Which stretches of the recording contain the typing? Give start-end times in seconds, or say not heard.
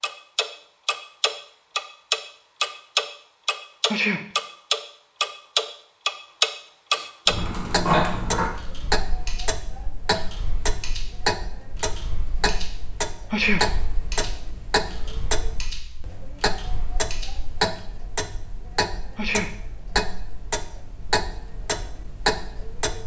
7.2-17.8.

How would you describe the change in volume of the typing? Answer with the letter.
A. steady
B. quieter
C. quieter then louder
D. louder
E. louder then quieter
B.